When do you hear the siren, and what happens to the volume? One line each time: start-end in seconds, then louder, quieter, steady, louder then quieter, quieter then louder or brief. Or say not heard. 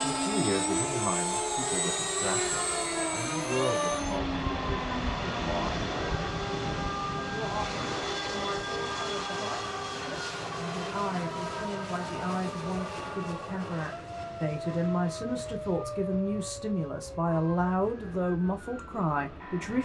0.0-19.8 quieter.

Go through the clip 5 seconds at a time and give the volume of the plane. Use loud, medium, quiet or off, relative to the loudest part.
loud, loud, medium, quiet.